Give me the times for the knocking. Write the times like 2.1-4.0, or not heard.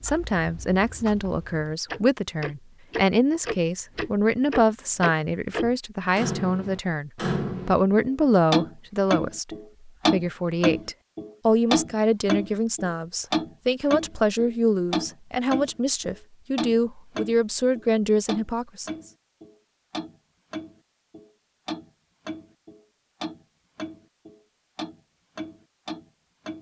not heard.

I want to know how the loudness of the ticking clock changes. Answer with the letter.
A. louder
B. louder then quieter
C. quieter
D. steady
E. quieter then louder
B.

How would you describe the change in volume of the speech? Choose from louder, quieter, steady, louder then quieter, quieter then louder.
steady.